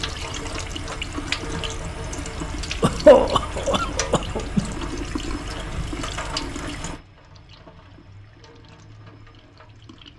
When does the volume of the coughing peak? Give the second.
3 s.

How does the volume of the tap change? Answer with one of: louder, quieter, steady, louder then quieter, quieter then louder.
quieter.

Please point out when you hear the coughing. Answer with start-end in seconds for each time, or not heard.
2.8-4.8.